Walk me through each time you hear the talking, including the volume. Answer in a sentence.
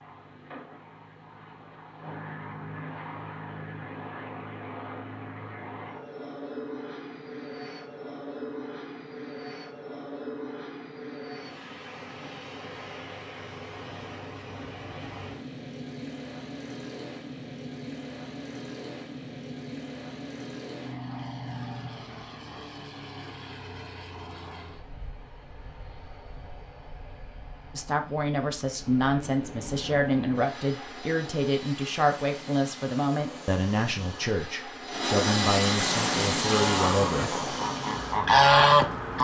You can hear the talking from 27.7 to 37.4 s, at a steady volume.